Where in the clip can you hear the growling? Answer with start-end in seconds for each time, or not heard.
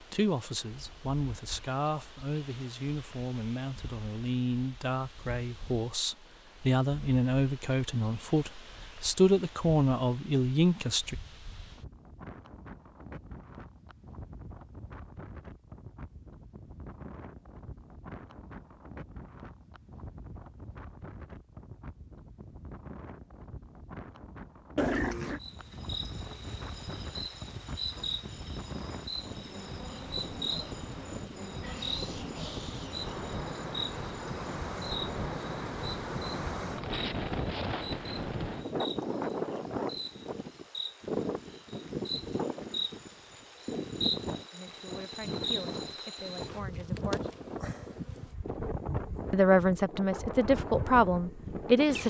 24.8-25.4.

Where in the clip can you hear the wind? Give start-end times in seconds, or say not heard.
0.0-52.0.